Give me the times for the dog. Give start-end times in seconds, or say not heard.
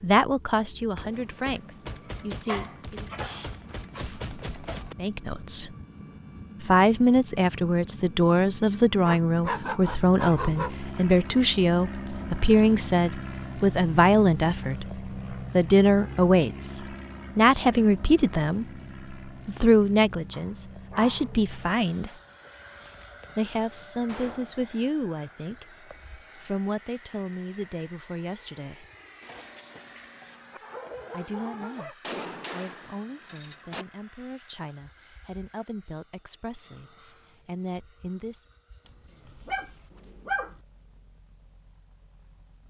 2.5-4.8, 9.0-10.8, 20.3-21.9, 29.2-31.9, 38.9-40.6.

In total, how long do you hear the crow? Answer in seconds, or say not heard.
not heard.